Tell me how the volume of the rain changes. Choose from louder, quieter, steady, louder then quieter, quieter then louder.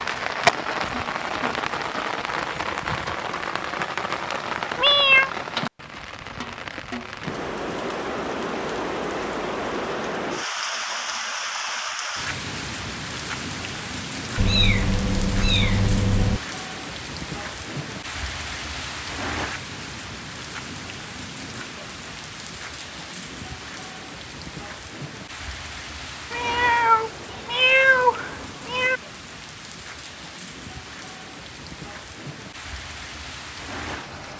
quieter.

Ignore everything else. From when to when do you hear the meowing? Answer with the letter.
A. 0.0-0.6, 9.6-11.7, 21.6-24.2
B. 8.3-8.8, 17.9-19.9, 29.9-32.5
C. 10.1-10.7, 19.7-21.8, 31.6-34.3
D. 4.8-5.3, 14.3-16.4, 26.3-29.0
D.